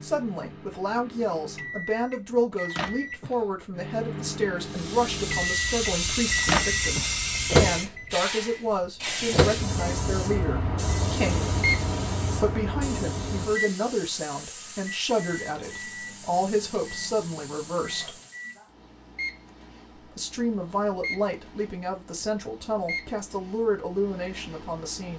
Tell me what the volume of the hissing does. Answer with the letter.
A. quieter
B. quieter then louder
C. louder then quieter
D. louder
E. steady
A.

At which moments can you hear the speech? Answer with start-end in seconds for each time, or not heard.
0.0-11.6, 12.3-18.2, 19.9-25.1.